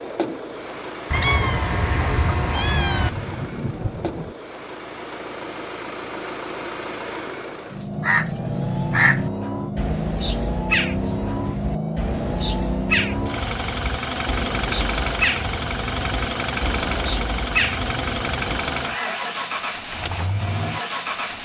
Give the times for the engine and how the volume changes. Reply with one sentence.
The engine can be heard from 0.0 to 21.4 s, getting louder.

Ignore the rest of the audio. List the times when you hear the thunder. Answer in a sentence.
The thunder can be heard from 2.9 to 4.3 s.